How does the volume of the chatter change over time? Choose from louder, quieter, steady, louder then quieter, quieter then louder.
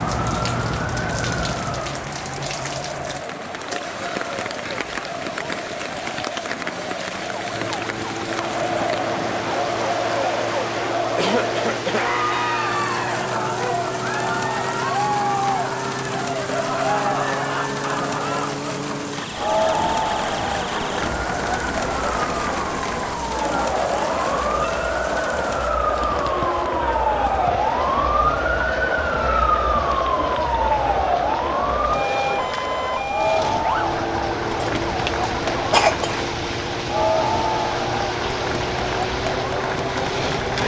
louder.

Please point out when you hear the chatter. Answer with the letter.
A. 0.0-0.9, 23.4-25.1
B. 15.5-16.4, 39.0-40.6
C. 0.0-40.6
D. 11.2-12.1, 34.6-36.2
C.